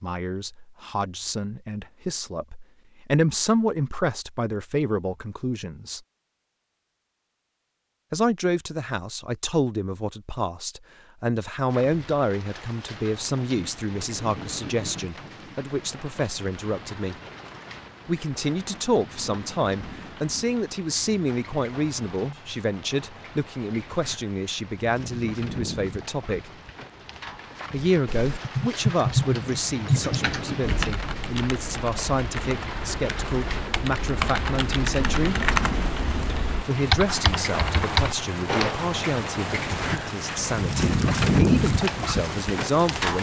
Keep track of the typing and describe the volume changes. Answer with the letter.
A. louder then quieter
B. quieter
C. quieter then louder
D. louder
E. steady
C.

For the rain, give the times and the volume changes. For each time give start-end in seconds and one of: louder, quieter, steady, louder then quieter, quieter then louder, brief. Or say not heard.
11.7-43.1 louder.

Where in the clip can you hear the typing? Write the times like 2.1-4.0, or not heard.
28.1-38.8.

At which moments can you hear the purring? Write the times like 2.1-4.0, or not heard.
not heard.